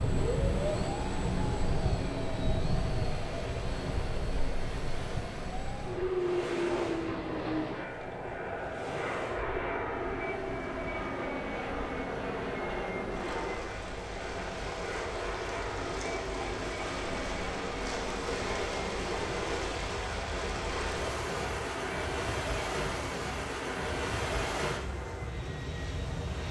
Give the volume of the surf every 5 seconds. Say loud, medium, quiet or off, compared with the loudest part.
loud, medium, medium, loud, loud, medium.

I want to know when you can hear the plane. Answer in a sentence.
The plane can be heard from 0.0 to 26.4 s.